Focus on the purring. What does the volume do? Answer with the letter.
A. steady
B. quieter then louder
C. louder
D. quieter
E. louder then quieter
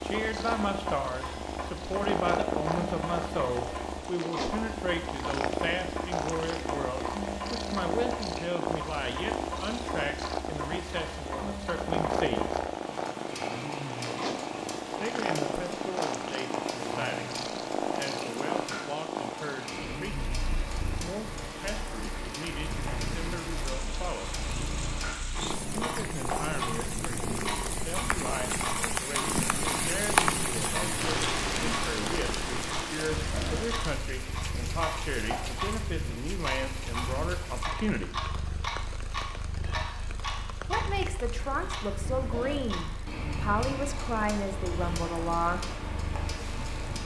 D.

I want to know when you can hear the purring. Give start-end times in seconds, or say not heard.
0.0-46.8.